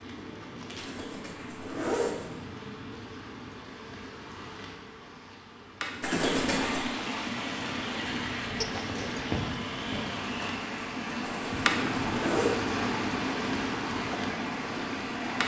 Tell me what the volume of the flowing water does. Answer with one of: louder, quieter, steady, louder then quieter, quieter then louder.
steady.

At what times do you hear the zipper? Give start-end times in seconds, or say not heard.
0.8-2.4, 6.0-6.9, 11.2-12.6.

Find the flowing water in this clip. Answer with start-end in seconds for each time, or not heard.
6.2-15.4.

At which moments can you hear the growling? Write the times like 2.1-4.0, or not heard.
8.6-9.4.